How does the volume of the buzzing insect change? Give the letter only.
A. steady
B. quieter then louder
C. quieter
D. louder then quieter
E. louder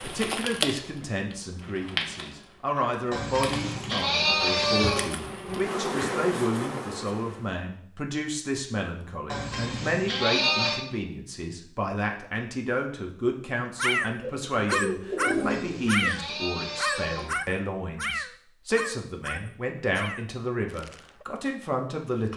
B.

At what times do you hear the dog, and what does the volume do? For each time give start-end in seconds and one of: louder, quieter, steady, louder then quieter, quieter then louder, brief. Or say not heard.
13.8-21.2 quieter.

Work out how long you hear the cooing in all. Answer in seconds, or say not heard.
2 s.